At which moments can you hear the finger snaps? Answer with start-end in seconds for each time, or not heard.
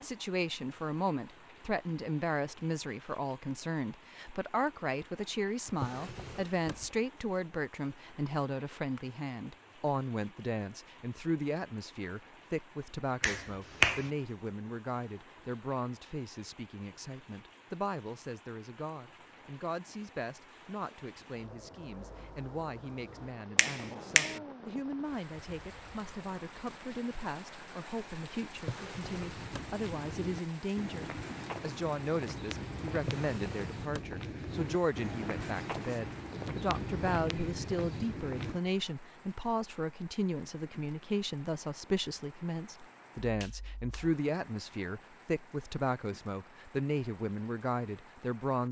13.2-14.1, 23.6-24.4, 43.2-44.1.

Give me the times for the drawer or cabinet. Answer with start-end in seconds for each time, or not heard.
5.7-7.0, 28.6-29.8, 33.0-34.2.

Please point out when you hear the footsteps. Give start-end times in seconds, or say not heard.
29.1-38.6.